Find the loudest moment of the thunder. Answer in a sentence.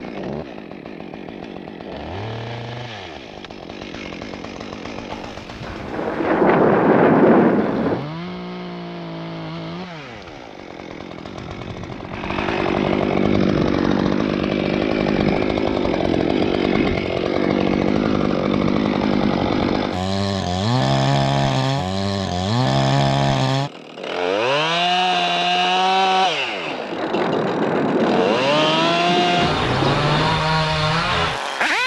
The loudest moment of the thunder is at 7 seconds.